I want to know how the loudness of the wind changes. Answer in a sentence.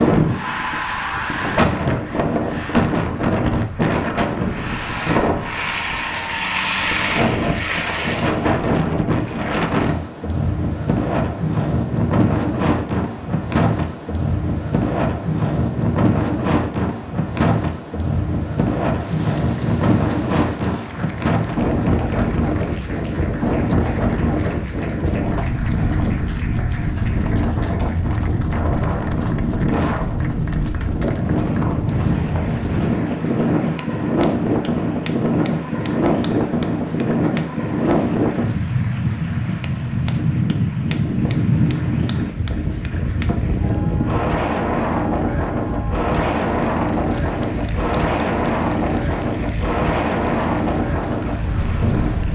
The volume of the wind stays about the same.